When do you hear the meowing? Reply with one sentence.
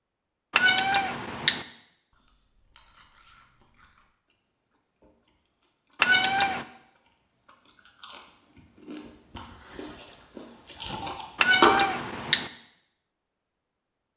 You can hear the meowing from 0.5 to 1.6 s, from 6.0 to 6.7 s and from 11.3 to 12.5 s.